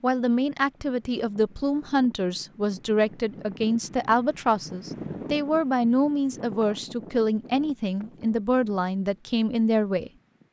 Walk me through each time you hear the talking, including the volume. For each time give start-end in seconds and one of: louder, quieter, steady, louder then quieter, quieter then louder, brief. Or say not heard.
0.0-10.1 steady.